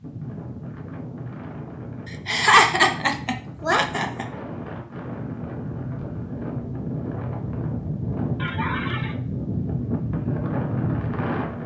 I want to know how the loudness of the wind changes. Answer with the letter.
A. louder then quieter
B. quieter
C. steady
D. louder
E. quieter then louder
D.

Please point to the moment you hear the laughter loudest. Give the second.
3 s.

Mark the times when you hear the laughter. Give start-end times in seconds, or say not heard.
2.0-4.2, 8.3-9.2.